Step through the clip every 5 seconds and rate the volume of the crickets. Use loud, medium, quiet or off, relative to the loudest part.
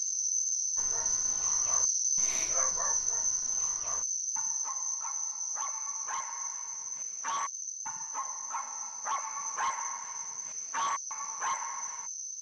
loud, medium, medium.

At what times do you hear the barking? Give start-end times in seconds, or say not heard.
0.8-12.1.